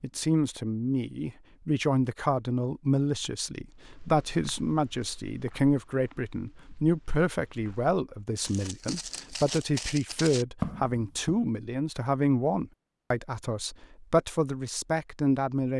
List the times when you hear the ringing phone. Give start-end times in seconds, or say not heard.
not heard.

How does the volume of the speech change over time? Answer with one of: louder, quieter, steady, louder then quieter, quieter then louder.
steady.